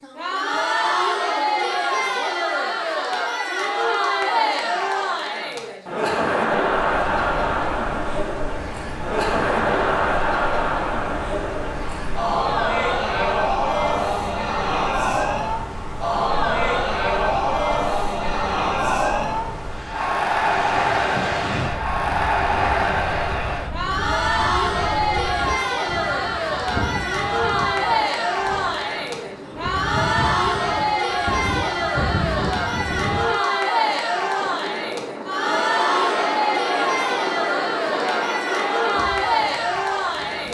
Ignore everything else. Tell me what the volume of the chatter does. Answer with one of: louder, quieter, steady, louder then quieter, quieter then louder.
steady.